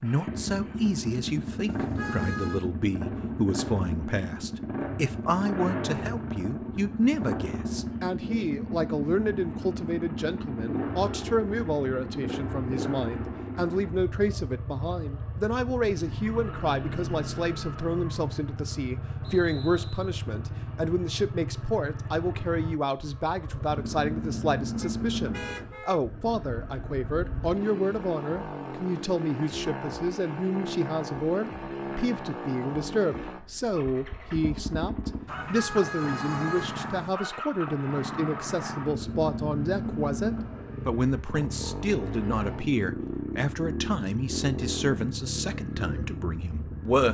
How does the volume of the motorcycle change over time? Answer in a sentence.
The volume of the motorcycle stays about the same.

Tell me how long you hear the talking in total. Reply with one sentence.
You can hear the talking for 47 seconds altogether.